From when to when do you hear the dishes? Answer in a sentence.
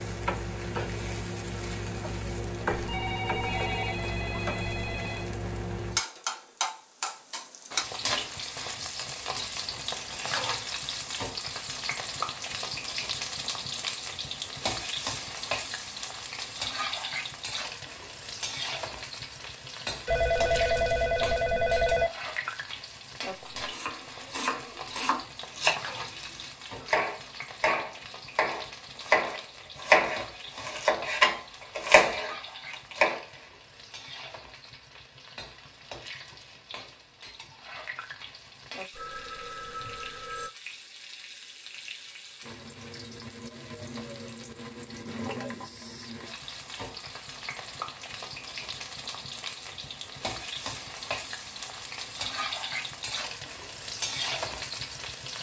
The dishes can't be heard in this clip.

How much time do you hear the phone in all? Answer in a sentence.
The phone can be heard for 6 seconds in total.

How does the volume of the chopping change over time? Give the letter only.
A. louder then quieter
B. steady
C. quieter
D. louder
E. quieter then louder
D.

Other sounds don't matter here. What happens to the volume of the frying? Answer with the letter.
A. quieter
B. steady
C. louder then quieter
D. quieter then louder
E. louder
D.